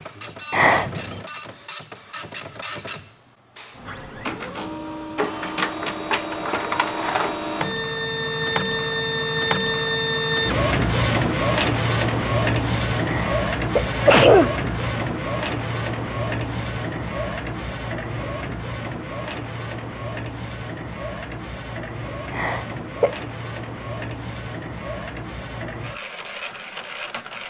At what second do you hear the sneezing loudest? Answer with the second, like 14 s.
14 s.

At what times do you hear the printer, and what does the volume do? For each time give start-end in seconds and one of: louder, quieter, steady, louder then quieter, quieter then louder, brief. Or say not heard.
0.0-27.4 louder then quieter.